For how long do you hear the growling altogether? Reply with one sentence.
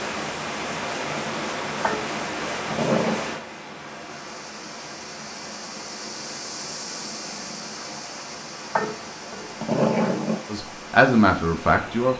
You can hear the growling for 3 seconds altogether.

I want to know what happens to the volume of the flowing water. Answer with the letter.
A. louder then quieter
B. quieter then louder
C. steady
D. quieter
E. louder
D.